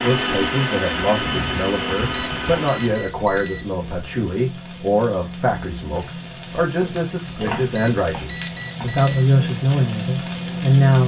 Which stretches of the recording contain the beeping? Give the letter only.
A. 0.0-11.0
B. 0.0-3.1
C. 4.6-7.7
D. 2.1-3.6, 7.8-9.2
D.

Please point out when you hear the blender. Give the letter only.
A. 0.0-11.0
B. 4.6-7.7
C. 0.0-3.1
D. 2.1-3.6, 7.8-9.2
C.